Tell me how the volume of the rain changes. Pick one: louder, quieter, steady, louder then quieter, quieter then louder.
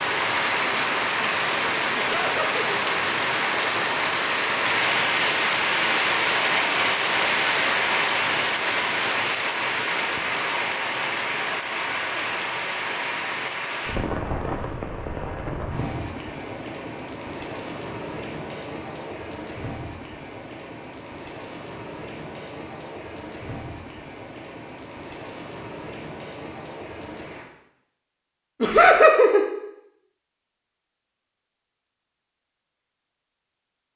quieter.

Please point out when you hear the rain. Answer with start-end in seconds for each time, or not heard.
0.0-27.5.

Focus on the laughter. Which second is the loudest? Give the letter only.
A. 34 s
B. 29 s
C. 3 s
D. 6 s
B.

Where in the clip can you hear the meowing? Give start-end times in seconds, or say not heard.
not heard.